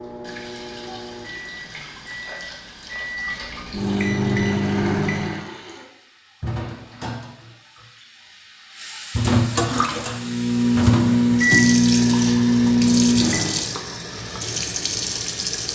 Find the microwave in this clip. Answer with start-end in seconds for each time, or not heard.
0.0-5.5, 10.1-13.7.